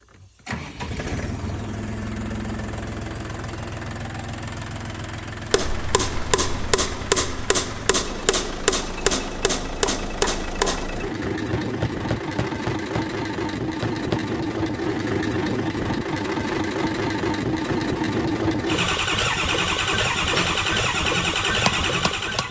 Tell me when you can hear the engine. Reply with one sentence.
The engine can be heard from 0.0 to 22.4 s.